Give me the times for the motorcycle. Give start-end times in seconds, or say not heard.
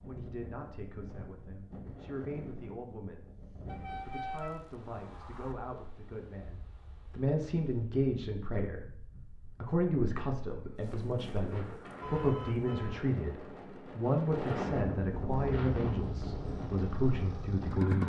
15.3-18.0.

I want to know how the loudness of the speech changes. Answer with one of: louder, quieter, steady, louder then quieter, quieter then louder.
louder.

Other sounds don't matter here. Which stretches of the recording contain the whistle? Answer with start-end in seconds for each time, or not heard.
not heard.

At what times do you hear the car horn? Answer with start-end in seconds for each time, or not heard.
3.6-5.5, 12.0-13.1.